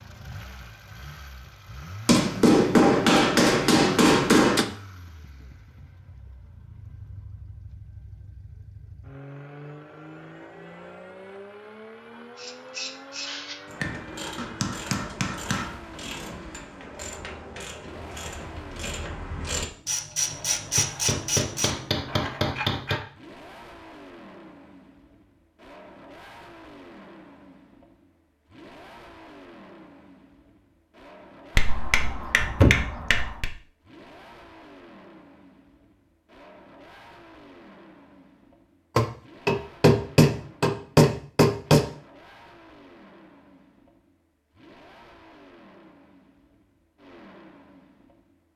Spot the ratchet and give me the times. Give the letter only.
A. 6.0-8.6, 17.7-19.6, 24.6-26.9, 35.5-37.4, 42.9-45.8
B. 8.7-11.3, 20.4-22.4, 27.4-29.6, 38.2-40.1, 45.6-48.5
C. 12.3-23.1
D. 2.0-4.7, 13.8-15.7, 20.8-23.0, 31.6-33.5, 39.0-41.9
C.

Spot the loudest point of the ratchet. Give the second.
21 s.